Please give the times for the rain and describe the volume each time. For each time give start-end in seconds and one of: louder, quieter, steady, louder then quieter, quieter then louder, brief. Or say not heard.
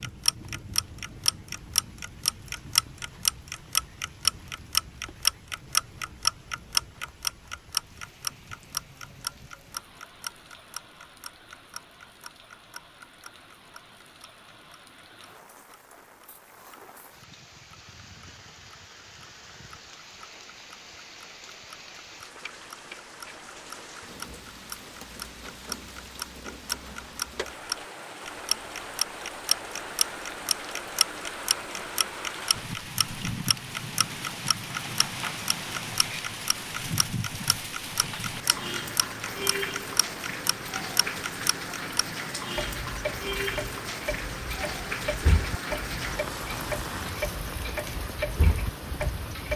0.0-49.5 louder.